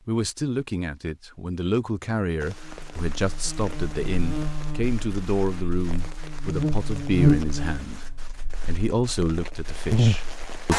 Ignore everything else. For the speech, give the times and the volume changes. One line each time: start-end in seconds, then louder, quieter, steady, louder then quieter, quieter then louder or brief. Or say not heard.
0.1-10.7 steady.